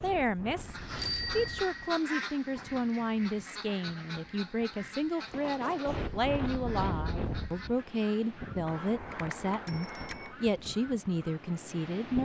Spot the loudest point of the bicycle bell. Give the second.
1 s.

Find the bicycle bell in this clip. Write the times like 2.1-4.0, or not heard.
0.9-2.0, 5.2-6.0, 8.7-10.3.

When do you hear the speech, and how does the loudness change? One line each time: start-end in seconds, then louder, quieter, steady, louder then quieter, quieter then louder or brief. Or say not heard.
0.0-12.2 steady.